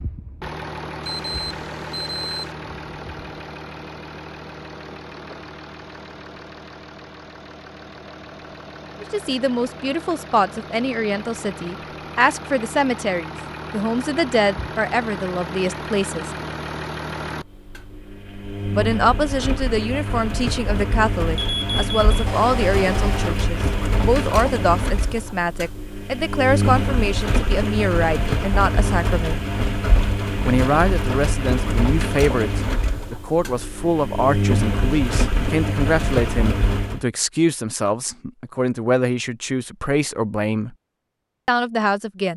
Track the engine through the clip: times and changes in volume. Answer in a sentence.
You can hear the engine from 0.0 to 37.0 s, getting louder.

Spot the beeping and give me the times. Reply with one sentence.
The beeping can be heard from 1.0 to 2.5 s and from 21.4 to 23.3 s.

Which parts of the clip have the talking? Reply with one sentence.
The talking can be heard from 9.0 to 16.3 s, from 18.7 to 29.4 s, from 30.4 to 40.8 s and from 41.5 to 42.3 s.